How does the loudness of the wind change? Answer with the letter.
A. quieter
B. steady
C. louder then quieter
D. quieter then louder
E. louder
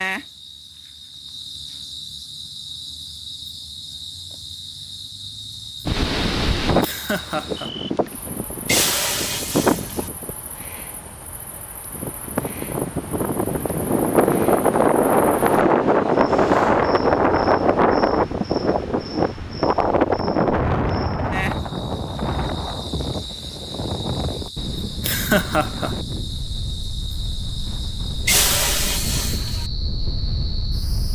C.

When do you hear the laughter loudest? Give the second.
25 s.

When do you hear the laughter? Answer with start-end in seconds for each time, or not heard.
6.8-7.7, 25.0-25.9.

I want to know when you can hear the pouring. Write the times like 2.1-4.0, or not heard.
8.7-10.1, 28.2-29.7.